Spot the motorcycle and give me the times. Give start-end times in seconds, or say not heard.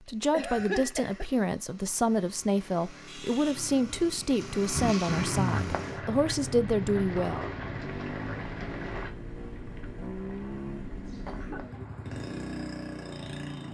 0.0-13.6.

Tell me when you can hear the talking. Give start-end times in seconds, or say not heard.
0.1-7.5.